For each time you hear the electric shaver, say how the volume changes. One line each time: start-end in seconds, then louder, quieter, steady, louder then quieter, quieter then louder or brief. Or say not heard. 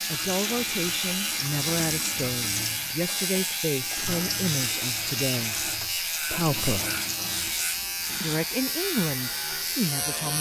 0.0-10.3 steady.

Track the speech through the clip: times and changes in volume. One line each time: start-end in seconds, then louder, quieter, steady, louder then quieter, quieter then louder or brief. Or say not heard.
0.1-6.9 steady
8.2-10.3 brief.